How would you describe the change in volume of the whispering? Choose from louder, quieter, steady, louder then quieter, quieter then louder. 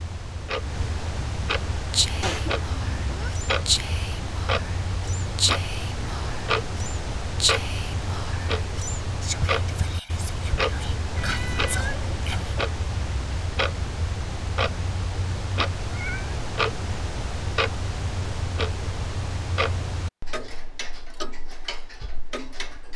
quieter.